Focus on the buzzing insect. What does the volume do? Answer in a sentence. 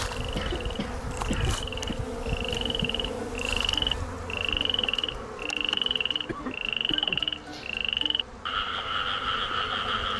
The loudness of the buzzing insect goes down.